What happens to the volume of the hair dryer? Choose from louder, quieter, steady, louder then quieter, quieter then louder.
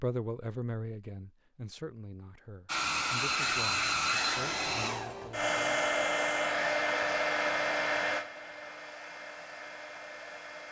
quieter.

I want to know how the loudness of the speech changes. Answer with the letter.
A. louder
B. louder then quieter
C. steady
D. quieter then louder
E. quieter
E.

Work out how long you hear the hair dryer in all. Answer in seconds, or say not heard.
8 s.